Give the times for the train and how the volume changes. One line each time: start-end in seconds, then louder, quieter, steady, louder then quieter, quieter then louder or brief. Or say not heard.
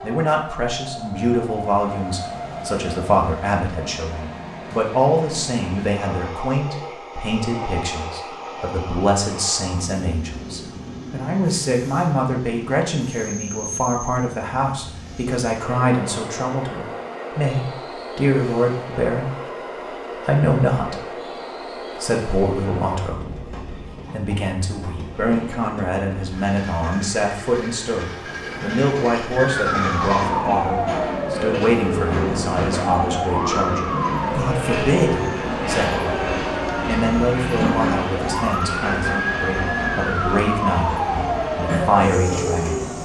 0.0-43.0 louder.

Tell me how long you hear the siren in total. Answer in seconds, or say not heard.
14 s.